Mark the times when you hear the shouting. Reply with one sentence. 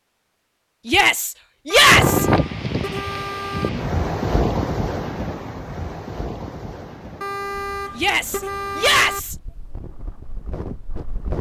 You can hear the shouting from 0.8 to 2.2 s and from 8.0 to 9.3 s.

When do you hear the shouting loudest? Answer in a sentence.
The volume of the shouting peaks at 2 seconds.